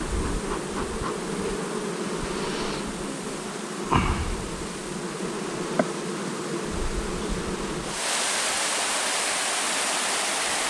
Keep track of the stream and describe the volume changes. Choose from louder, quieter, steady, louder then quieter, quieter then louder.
louder.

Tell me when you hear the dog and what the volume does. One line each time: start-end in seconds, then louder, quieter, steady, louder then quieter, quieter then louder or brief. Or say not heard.
not heard.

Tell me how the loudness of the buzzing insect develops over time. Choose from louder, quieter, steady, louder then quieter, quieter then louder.
quieter.